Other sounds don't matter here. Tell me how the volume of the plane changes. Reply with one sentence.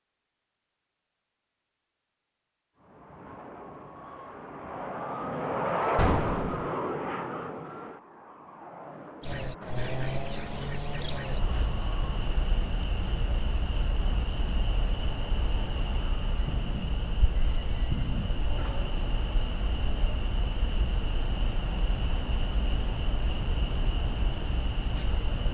The loudness of the plane goes up, then down.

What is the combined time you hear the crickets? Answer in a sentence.
You can hear the crickets for 16 seconds altogether.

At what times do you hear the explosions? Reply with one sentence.
You can hear the explosions from 6.0 to 6.7 s, from 16.4 to 17.1 s and from 17.9 to 18.3 s.